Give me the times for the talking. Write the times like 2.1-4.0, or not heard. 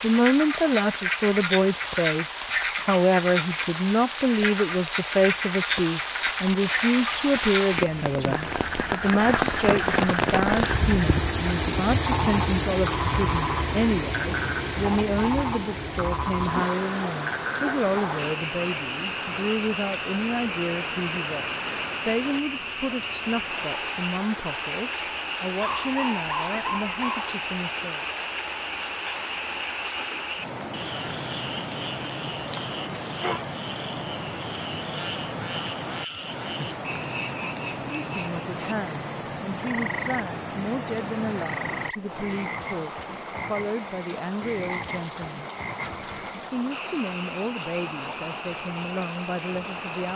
0.0-28.1, 37.8-50.1.